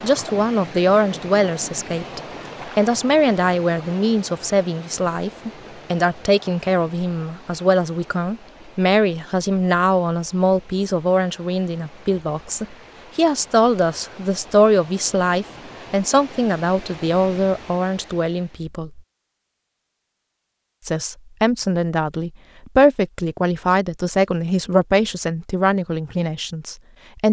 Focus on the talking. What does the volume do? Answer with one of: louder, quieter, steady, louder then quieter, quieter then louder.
steady.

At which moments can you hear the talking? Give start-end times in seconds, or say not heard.
0.0-19.0, 20.9-27.2.